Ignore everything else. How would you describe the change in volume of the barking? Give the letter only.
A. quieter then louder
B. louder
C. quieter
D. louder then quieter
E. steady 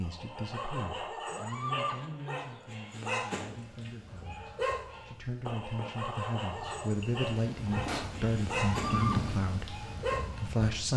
E.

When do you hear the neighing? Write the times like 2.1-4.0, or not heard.
1.2-2.0, 8.7-9.2.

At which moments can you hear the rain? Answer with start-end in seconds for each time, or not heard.
3.5-10.9.